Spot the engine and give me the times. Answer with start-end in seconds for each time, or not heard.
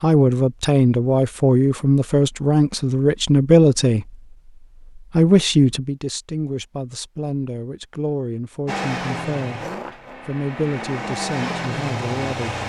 8.7-12.6.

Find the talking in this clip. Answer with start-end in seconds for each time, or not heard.
0.0-4.2, 5.0-9.6, 10.2-12.6.